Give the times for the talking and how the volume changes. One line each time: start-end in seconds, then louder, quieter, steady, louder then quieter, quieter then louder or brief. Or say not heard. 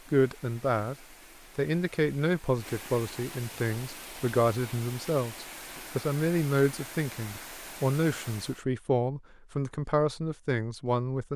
0.1-0.9 brief
1.6-11.3 steady.